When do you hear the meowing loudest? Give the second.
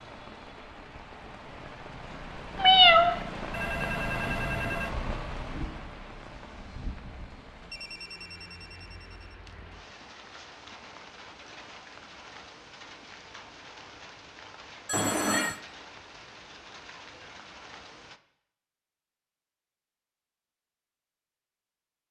3 s.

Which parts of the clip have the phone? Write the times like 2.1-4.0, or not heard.
3.5-5.0, 7.7-9.3, 14.8-15.6.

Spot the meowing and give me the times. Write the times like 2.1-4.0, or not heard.
2.5-3.2, 14.9-15.6.